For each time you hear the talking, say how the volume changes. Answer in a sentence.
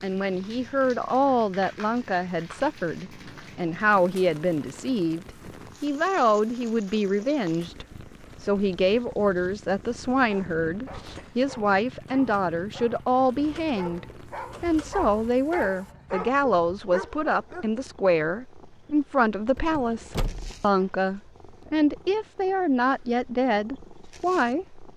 The talking can be heard from 0.0 to 24.9 s, at a steady volume.